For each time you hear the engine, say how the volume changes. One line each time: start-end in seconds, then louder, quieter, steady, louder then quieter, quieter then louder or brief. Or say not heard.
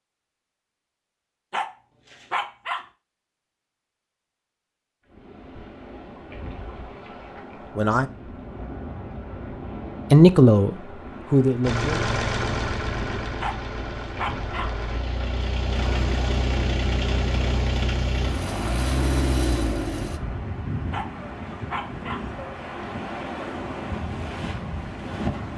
11.6-20.2 quieter then louder.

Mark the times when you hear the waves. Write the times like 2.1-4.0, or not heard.
5.0-25.5.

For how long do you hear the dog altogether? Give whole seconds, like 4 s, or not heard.
4 s.